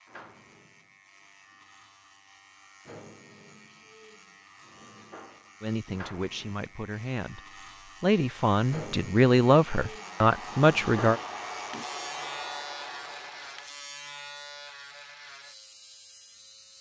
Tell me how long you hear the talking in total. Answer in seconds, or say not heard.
5 s.